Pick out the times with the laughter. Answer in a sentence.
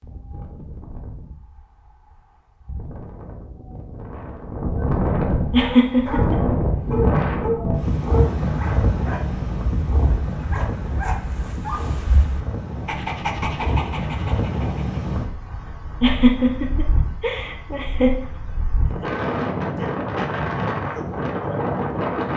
You can hear the laughter from 5.5 to 6.3 s and from 16.0 to 18.1 s.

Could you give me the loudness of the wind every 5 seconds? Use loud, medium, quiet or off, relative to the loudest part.
medium, loud, medium, medium, loud.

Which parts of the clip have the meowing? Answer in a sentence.
You can't hear the meowing here.